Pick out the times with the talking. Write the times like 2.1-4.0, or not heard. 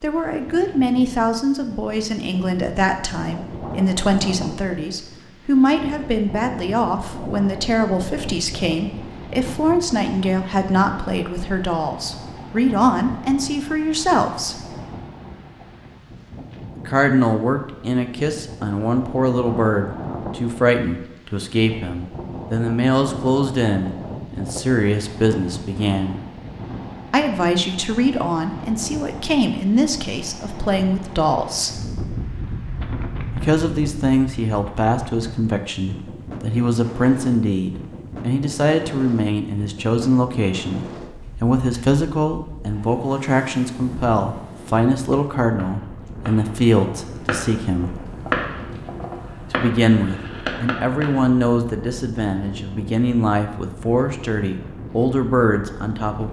0.0-14.7, 16.8-26.2, 27.1-31.8, 33.4-48.0, 49.5-56.2.